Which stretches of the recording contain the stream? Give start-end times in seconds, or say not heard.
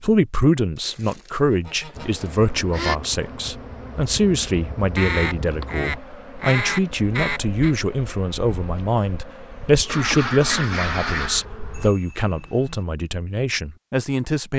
not heard.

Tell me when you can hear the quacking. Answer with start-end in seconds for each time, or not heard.
0.8-3.0, 5.0-7.8, 9.8-11.4.